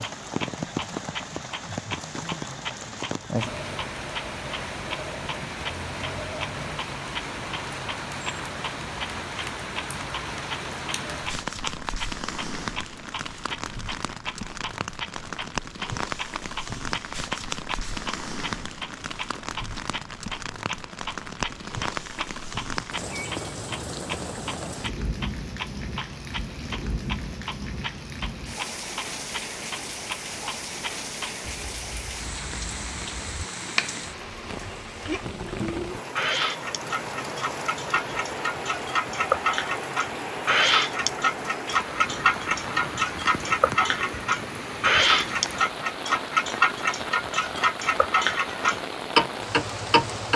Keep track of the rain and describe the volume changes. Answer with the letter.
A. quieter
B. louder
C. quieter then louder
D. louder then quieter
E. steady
E.